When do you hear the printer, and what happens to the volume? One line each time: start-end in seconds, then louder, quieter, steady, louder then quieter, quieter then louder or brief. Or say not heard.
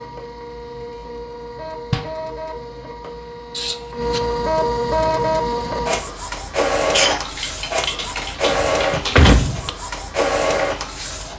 0.0-11.3 louder.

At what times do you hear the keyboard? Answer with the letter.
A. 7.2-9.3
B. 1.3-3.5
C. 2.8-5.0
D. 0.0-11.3
A.